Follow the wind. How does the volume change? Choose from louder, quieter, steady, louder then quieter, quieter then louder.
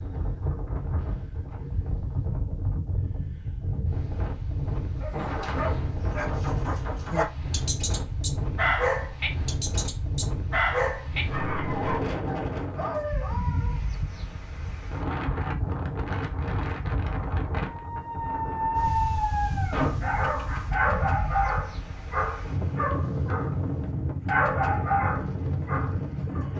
steady.